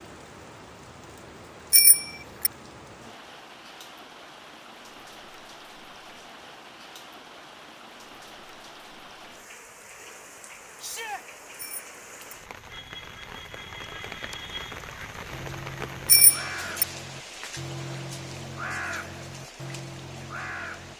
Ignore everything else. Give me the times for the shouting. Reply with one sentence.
You can hear the shouting from 10.8 to 11.2 s.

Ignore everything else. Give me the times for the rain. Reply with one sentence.
The rain can be heard from 0.0 to 20.9 s.